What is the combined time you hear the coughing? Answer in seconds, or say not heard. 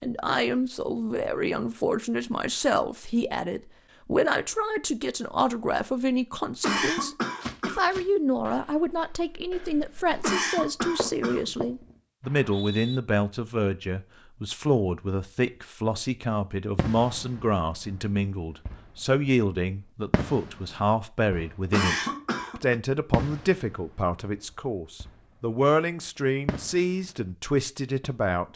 4 s.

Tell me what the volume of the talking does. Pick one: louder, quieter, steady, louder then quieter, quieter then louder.
steady.